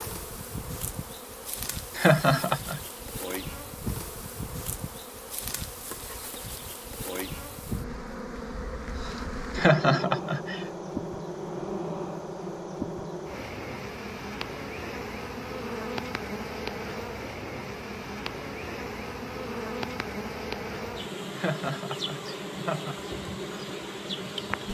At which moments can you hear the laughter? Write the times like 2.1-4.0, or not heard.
1.9-2.8, 9.6-10.6, 21.3-22.9.